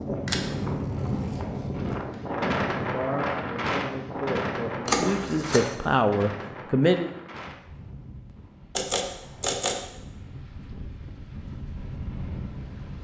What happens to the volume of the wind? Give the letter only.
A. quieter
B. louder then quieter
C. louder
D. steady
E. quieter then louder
E.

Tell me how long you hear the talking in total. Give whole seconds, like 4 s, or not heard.
5 s.